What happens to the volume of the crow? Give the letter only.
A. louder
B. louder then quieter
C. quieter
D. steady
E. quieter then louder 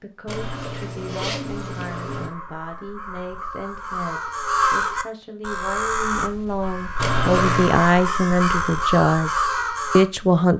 A.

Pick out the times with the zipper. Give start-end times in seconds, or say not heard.
0.2-2.3, 7.0-7.8.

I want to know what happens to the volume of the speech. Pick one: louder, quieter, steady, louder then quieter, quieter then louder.
louder.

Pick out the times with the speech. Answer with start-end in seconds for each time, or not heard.
0.0-10.5.